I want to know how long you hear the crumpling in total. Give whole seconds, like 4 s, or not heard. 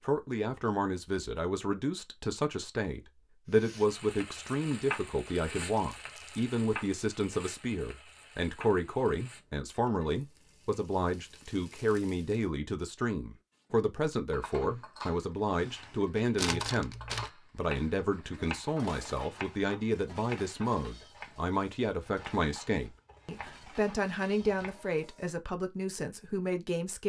2 s.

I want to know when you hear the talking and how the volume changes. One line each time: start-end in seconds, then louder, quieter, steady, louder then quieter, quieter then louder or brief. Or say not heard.
0.0-27.0 steady.